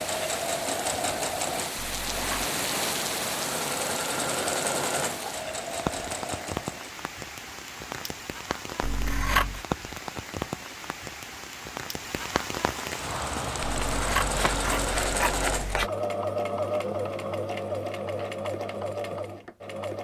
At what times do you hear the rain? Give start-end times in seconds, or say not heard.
0.0-15.8.